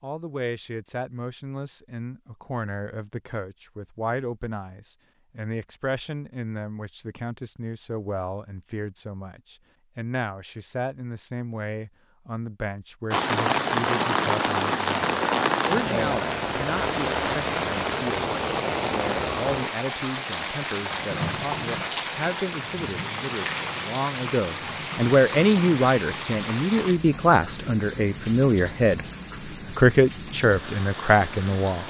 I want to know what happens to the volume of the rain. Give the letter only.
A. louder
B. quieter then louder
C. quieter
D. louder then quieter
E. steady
C.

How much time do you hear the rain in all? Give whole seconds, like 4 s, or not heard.
19 s.